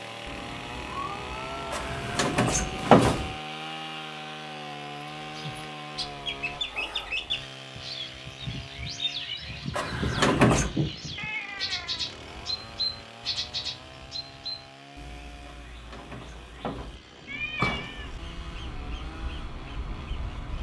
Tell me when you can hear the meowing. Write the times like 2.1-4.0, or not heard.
0.2-1.9, 11.2-12.1, 17.2-18.1.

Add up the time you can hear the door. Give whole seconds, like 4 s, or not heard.
5 s.